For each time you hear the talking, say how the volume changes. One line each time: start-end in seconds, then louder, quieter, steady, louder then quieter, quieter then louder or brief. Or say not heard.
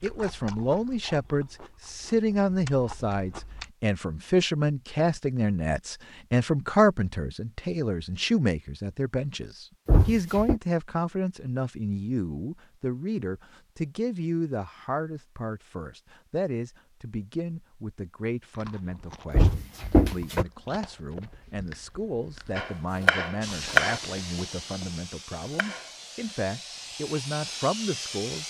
0.0-28.4 quieter.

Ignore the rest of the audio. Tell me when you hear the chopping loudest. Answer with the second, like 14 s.
24 s.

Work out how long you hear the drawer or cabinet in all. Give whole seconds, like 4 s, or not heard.
2 s.